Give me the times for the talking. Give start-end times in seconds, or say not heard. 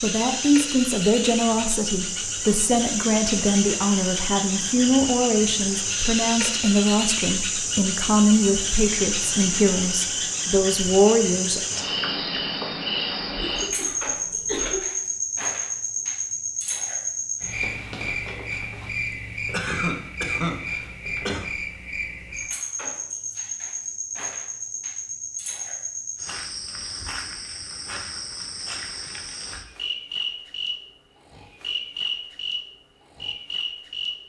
0.0-11.6.